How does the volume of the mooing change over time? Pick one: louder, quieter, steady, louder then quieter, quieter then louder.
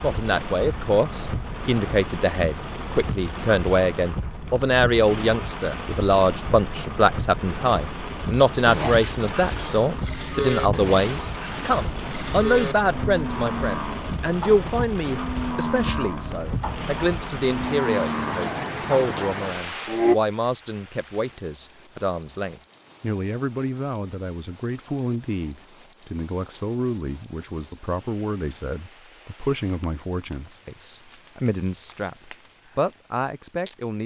steady.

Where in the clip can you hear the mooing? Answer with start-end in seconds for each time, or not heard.
8.7-20.1.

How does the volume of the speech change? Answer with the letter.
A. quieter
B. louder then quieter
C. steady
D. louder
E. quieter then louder
A.